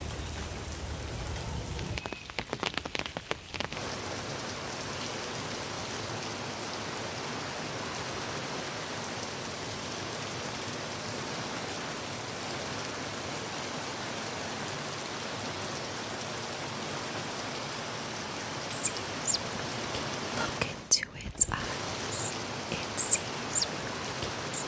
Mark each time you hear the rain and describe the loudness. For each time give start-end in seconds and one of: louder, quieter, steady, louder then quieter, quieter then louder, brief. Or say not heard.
0.0-24.6 steady.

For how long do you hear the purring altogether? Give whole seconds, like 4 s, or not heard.
not heard.